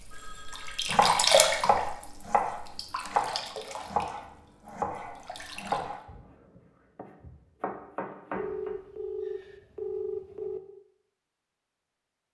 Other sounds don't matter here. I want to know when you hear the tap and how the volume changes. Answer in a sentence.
You can hear the tap from 0.0 to 6.0 s, getting quieter.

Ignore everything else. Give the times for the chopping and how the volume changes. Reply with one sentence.
The chopping can be heard from 0.8 to 8.8 s, getting quieter.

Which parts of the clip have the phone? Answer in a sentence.
The phone can be heard from 0.1 to 0.9 s and from 8.3 to 10.6 s.